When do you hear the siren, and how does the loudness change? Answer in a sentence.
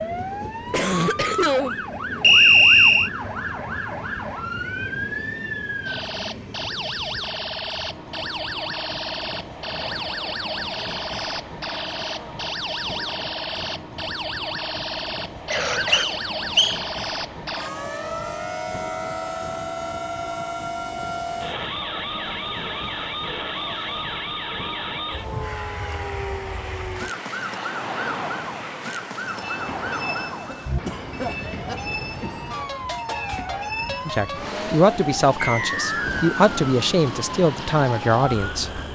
You can hear the siren from 0.0 to 38.9 s, at a steady volume.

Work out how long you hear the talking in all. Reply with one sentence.
You can hear the talking for 5 seconds altogether.